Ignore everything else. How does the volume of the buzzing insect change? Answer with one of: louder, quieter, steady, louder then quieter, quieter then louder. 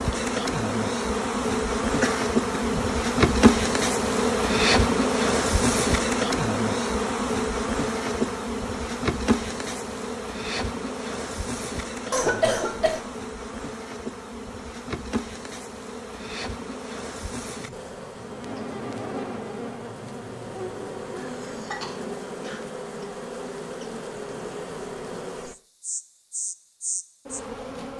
quieter.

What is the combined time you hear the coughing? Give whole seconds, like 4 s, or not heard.
3 s.